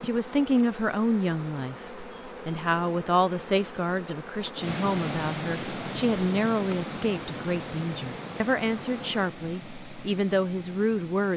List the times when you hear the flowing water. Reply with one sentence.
The flowing water can be heard from 4.5 to 11.3 s.